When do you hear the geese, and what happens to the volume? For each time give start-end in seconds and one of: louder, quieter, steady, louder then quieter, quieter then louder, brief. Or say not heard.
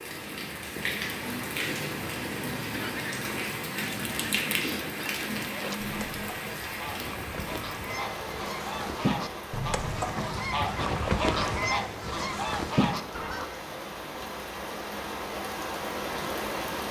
2.7-13.5 louder.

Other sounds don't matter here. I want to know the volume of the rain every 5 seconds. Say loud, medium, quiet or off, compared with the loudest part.
loud, loud, medium, loud.